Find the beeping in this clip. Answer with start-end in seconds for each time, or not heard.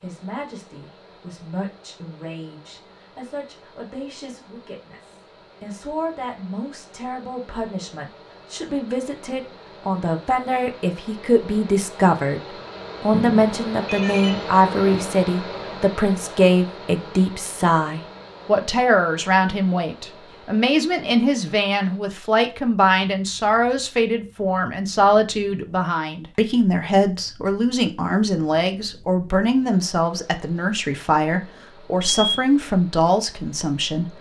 13.1-15.0, 32.0-32.5.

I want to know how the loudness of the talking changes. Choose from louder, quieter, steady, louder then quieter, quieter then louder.
louder.